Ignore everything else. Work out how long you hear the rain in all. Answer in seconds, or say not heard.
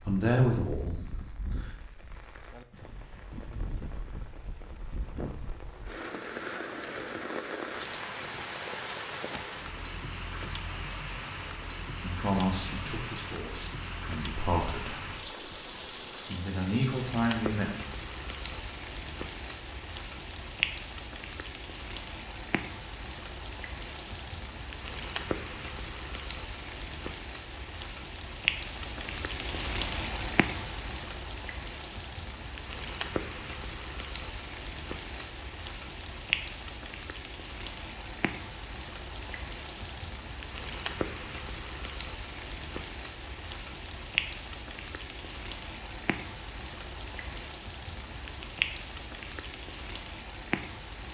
51 s.